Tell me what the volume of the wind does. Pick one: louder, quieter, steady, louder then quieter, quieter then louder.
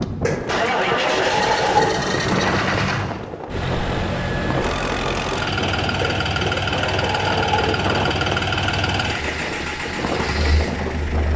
steady.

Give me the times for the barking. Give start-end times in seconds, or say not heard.
0.2-2.1, 6.0-7.8.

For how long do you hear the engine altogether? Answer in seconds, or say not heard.
11 s.